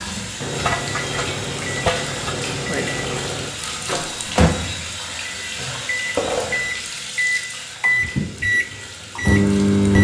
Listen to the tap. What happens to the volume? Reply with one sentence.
The volume of the tap goes down.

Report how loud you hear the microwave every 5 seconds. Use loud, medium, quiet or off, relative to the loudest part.
medium, loud.